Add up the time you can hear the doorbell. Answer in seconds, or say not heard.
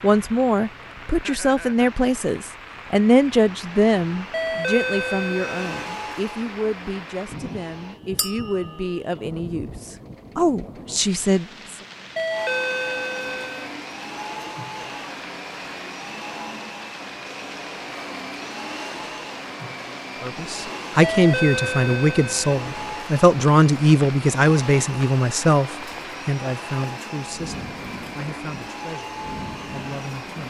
5 s.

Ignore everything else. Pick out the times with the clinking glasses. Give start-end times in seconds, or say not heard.
8.2-8.9.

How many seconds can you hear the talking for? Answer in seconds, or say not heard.
22 s.